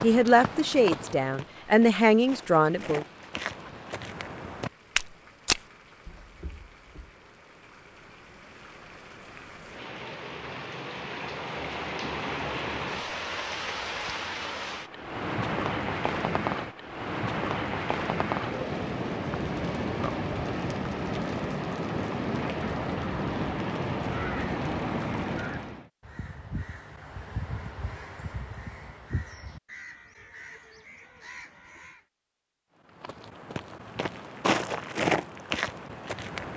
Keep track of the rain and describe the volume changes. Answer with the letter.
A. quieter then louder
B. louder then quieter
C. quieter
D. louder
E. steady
D.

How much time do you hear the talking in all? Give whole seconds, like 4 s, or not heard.
3 s.